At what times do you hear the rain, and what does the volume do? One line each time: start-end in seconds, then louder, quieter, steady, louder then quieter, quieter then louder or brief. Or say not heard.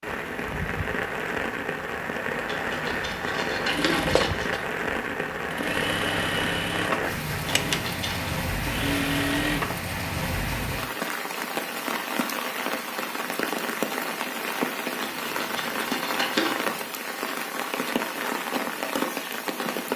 0.0-19.9 steady.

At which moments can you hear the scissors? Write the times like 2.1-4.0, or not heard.
2.5-4.5, 7.5-8.3, 15.0-16.6.